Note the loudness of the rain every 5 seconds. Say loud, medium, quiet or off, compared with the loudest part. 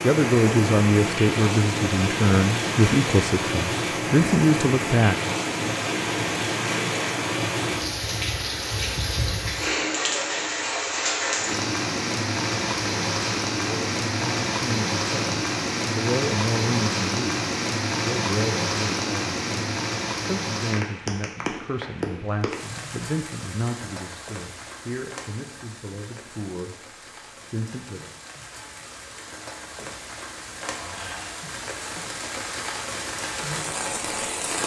loud, loud, loud, loud, medium, quiet, medium.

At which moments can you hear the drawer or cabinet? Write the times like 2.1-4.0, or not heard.
30.6-31.4.